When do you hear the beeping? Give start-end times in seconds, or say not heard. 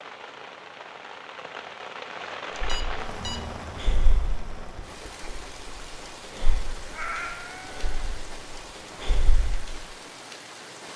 2.6-3.5.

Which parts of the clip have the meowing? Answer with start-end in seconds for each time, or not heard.
6.9-8.0.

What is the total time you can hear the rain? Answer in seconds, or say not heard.
11 s.